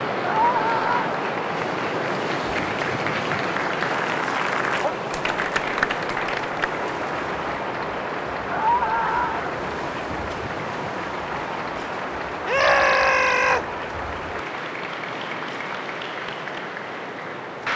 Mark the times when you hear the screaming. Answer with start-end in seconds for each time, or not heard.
0.2-1.1, 8.5-9.6, 12.4-13.7.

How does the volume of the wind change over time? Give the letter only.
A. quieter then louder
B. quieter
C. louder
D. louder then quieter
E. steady
B.